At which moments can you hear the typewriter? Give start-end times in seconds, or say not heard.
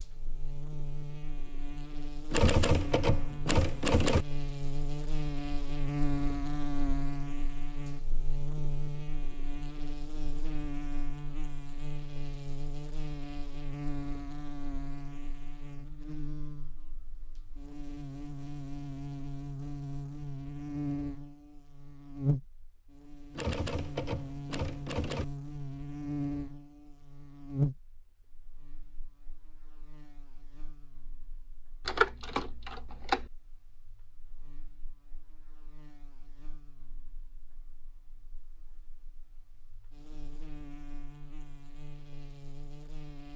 2.3-4.2, 23.3-25.2, 31.9-33.3.